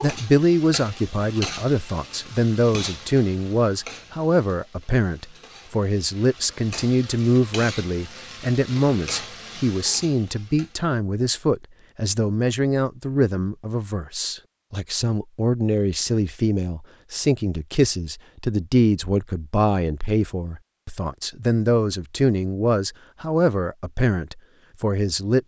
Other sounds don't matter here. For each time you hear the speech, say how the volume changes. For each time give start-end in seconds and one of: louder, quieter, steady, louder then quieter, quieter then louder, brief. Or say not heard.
0.0-25.4 steady.